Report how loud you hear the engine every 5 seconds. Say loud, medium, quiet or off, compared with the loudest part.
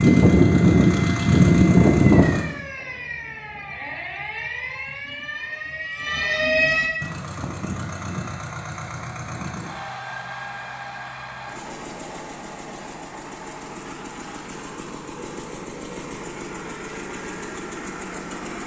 loud, quiet, quiet, quiet.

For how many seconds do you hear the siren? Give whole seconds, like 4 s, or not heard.
7 s.